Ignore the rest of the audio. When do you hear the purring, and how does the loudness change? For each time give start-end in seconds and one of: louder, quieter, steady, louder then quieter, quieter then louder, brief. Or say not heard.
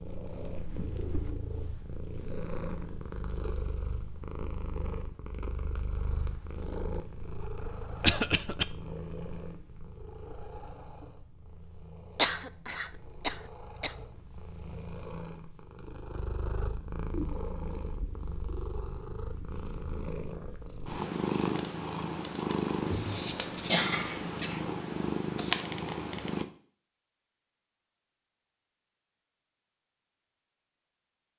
0.0-26.4 quieter then louder.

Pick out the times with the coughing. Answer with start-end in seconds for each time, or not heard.
8.0-8.7, 12.2-13.9, 22.8-24.6.